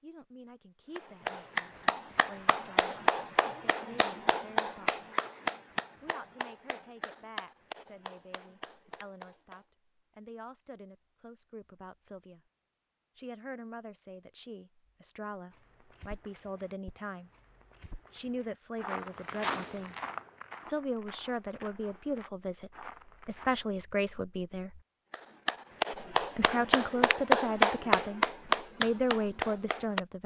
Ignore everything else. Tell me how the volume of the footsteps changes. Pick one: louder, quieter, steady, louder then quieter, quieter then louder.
louder then quieter.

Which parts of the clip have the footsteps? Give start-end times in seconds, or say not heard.
15.5-23.6.